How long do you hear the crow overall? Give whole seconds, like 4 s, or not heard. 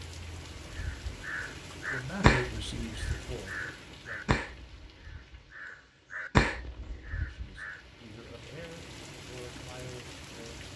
7 s.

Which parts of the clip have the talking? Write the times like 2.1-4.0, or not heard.
1.9-4.2, 7.2-10.7.